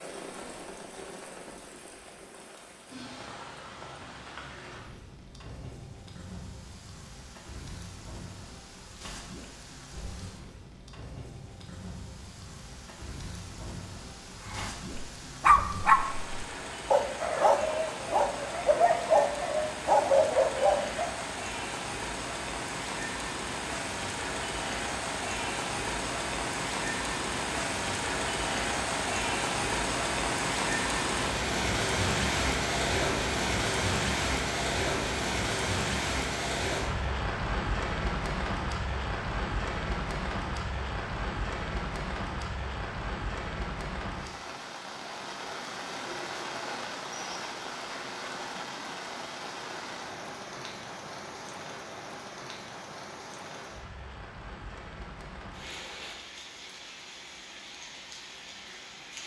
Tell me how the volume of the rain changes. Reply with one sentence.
The loudness of the rain goes up, then down.